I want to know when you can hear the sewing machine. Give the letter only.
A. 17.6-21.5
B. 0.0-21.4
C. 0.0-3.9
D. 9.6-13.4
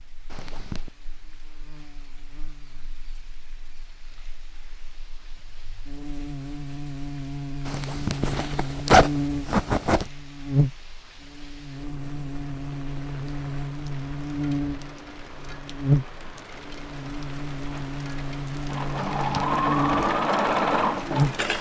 A.